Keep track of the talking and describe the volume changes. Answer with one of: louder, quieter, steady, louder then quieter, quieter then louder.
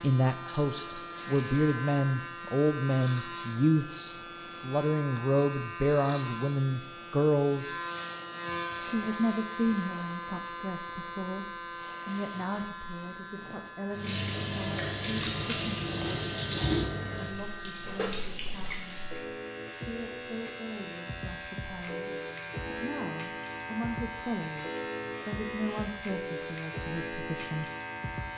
quieter then louder.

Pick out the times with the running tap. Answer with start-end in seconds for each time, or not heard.
13.9-19.2.